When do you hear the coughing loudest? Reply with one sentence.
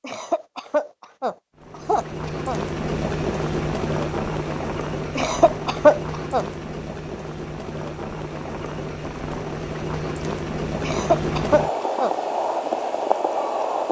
The loudest moment of the coughing is at 6 seconds.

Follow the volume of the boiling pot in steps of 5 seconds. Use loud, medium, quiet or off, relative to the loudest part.
loud, medium, loud.